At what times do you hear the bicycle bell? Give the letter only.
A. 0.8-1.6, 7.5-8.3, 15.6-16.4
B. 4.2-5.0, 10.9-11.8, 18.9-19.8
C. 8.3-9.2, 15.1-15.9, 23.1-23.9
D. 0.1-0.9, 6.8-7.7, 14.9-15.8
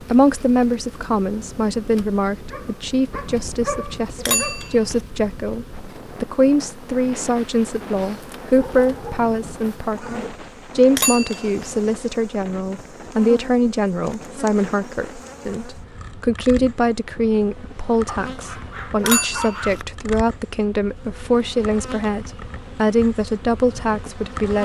B.